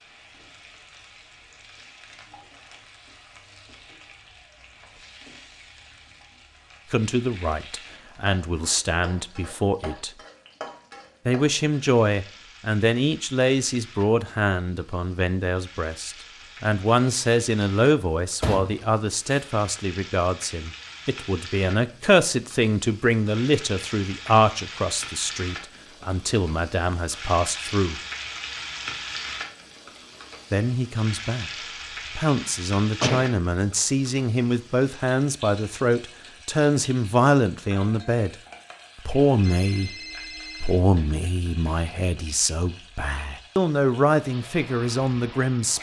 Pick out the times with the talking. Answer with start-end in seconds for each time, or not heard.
6.9-10.1, 11.2-28.0, 30.5-31.5, 32.1-38.4, 39.0-40.0, 40.6-45.7.